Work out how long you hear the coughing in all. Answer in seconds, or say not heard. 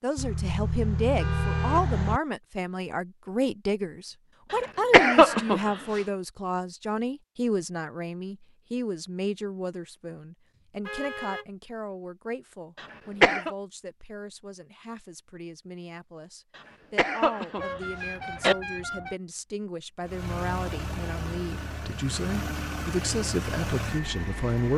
4 s.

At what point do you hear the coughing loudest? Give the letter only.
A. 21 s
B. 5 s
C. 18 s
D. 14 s
B.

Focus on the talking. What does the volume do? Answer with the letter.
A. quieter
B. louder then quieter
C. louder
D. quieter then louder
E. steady
D.